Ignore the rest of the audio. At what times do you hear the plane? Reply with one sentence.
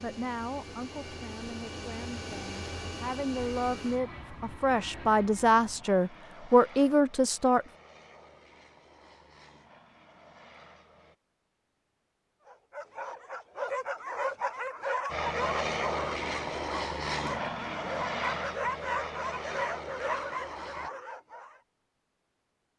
You can hear the plane from 0.0 to 11.2 s and from 15.1 to 20.9 s.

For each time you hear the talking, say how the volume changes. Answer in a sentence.
You can hear the talking from 0.0 to 7.7 s, getting louder.